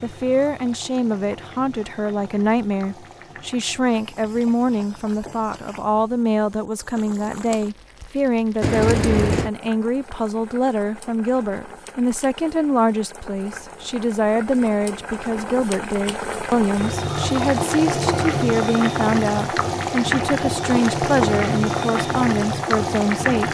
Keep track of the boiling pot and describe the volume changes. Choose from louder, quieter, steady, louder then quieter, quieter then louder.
louder.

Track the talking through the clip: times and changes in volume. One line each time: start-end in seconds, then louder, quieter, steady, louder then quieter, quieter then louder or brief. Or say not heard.
0.0-23.4 steady.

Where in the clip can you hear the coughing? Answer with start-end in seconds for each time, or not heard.
8.6-9.5.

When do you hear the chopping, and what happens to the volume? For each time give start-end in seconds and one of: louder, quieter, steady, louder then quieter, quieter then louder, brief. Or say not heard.
not heard.